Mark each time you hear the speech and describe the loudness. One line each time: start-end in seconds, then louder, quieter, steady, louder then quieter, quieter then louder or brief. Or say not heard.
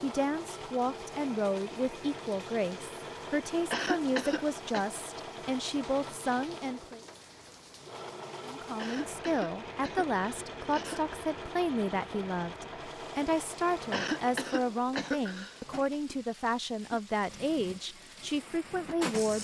0.0-7.0 steady
8.4-19.3 steady.